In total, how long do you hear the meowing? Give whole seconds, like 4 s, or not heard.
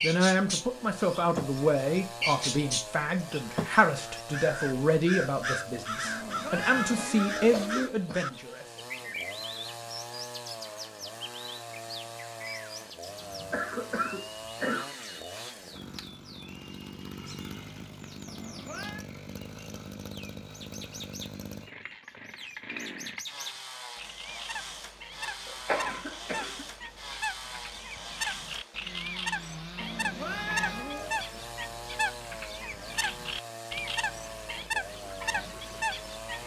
4 s.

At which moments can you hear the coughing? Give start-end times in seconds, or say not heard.
7.0-8.3, 13.2-14.8, 25.4-26.6.